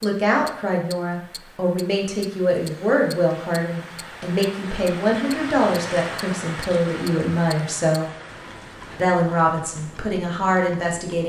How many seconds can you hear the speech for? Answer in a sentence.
The speech can be heard for 10 seconds in total.